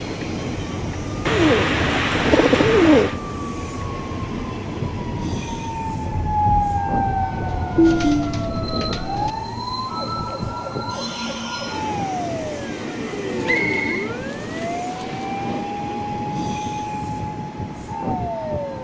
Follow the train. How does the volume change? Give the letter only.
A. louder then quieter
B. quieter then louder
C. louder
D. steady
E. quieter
D.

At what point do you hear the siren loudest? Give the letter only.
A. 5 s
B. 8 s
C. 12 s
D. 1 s
B.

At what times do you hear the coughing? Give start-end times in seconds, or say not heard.
not heard.